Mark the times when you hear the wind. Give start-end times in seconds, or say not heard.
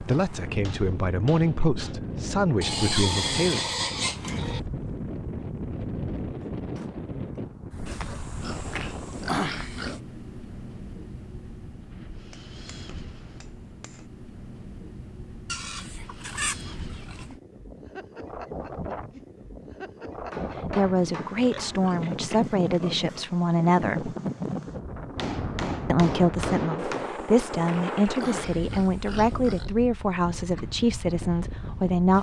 0.0-32.1.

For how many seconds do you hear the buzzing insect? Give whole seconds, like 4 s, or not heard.
not heard.